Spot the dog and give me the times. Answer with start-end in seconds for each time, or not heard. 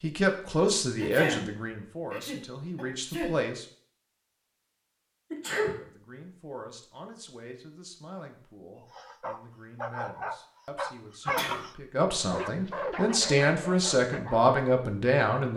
8.8-14.6.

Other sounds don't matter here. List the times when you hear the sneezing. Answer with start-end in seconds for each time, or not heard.
0.9-1.4, 2.1-3.3, 5.3-5.8, 11.2-11.7.